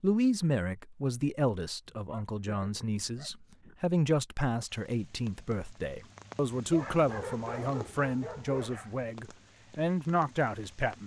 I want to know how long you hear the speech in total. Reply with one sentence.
You can hear the speech for 11 seconds altogether.